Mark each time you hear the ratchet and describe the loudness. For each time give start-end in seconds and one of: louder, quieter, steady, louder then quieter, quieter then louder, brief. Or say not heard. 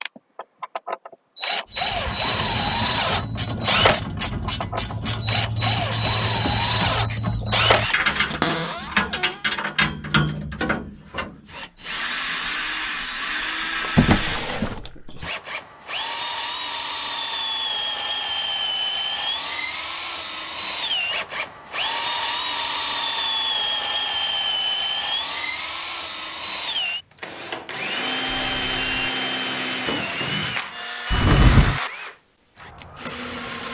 1.6-11.7 steady.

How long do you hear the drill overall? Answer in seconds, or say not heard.
30 s.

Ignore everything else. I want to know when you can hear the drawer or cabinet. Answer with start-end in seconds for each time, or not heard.
8.3-9.3, 13.9-15.2, 31.1-31.8.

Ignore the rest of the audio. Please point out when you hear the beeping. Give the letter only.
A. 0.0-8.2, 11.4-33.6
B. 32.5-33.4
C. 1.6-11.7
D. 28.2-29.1
D.